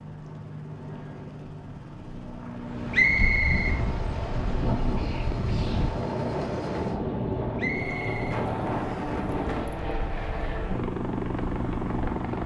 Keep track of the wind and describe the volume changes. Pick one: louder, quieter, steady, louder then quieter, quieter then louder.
quieter.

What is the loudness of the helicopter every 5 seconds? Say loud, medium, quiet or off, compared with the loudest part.
medium, loud, loud.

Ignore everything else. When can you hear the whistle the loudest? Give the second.
3 s.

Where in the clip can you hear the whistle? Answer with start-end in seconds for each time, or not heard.
2.9-3.8, 7.5-9.2.